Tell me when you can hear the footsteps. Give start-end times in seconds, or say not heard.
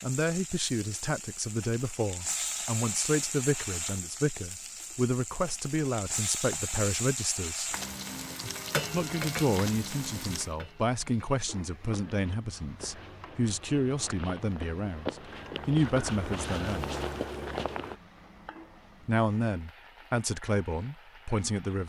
11.9-17.9.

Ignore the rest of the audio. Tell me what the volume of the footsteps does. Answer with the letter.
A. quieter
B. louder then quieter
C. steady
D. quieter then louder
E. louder
E.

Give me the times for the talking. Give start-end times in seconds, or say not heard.
0.0-7.8, 8.9-17.0, 19.1-21.8.